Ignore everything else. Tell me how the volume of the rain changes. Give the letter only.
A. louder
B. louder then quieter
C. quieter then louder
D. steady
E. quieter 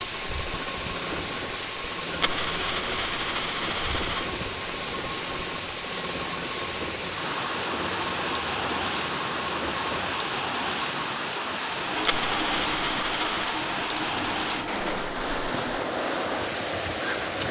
D.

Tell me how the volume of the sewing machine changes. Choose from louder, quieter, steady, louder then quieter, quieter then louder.
steady.